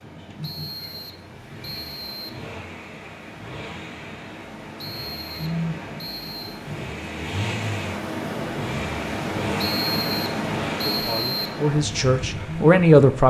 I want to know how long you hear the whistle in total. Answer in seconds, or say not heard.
6 s.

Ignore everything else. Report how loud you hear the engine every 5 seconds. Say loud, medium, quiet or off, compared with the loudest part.
medium, loud, loud.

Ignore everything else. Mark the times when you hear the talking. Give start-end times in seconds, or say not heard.
10.8-13.2.